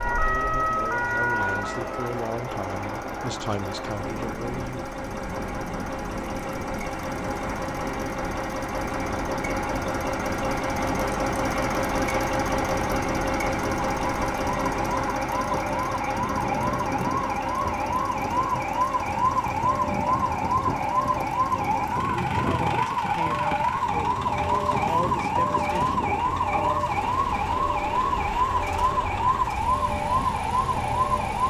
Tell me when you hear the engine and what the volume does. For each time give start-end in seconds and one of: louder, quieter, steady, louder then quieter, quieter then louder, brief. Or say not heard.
0.0-31.4 louder then quieter.